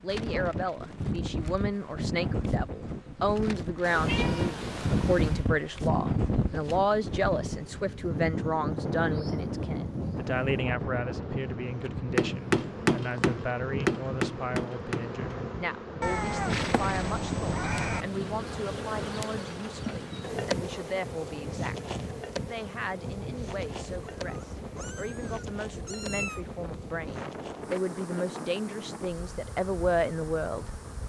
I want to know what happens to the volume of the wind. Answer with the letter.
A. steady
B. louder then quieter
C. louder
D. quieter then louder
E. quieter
E.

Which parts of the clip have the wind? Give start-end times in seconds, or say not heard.
0.0-31.0.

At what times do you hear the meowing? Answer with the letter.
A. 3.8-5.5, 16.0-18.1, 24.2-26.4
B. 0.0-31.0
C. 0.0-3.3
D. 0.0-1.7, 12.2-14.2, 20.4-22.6
A.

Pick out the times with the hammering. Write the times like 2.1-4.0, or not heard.
11.8-15.2.